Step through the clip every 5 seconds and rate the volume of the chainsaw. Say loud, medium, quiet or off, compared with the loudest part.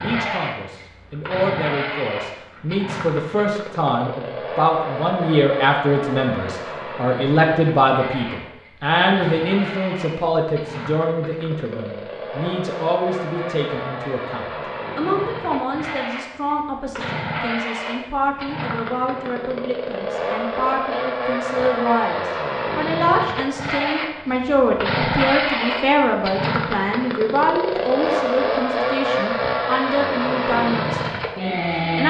medium, medium, medium, medium, loud, loud, loud.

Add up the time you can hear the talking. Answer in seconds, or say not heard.
32 s.